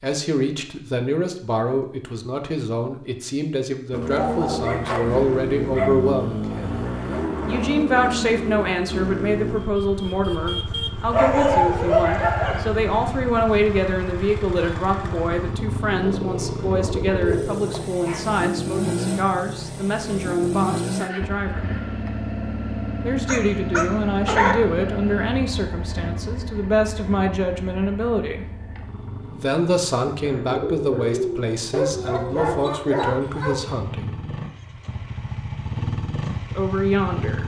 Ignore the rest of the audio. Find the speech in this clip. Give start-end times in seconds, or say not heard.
0.0-6.8, 7.5-21.7, 23.0-28.4, 29.2-34.2, 36.5-37.4.